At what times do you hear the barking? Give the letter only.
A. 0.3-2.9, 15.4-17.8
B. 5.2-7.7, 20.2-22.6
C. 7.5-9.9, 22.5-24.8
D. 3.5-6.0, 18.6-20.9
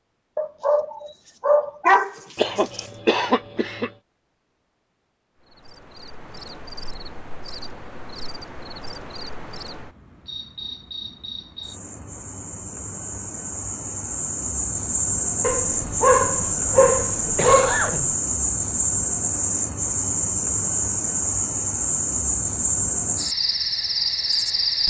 A.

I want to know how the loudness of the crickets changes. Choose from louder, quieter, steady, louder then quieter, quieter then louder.
louder.